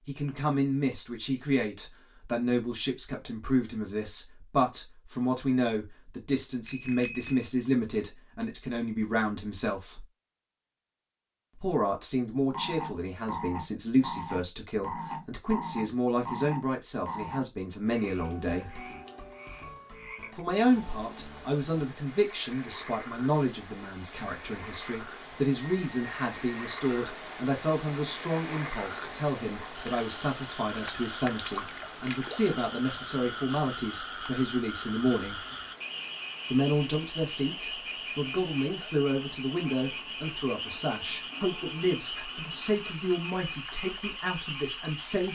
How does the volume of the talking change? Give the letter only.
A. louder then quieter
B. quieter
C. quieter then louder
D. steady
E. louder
D.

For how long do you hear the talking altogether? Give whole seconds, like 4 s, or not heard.
41 s.